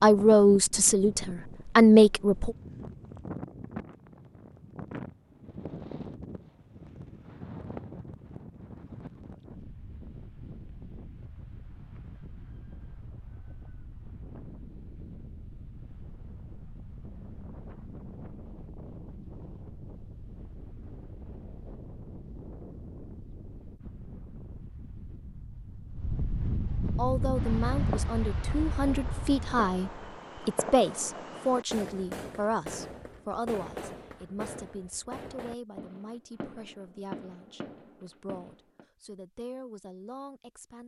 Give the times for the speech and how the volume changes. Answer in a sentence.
The speech can be heard briefly from 0.0 to 2.5 s; and from 26.9 to 40.8 s, getting quieter.